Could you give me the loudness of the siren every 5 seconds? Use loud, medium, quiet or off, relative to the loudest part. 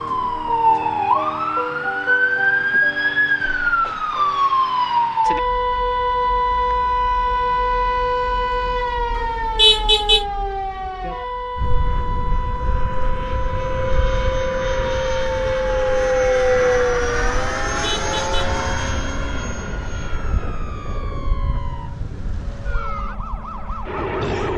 loud, loud, medium, quiet, quiet.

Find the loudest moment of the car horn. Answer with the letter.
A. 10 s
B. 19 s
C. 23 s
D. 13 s
A.